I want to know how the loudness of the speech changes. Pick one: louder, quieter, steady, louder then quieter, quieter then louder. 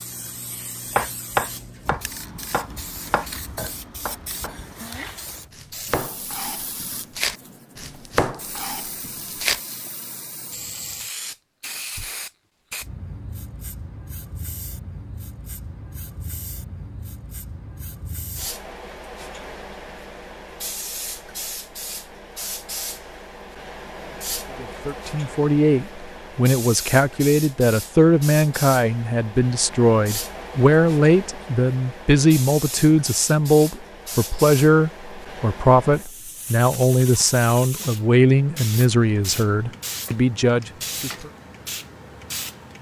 steady.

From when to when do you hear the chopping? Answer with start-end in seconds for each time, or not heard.
0.9-9.6.